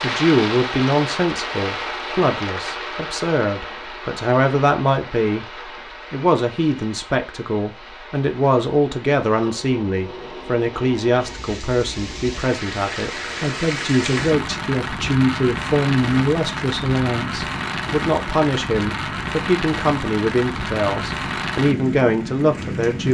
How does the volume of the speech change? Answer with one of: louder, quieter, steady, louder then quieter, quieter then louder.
steady.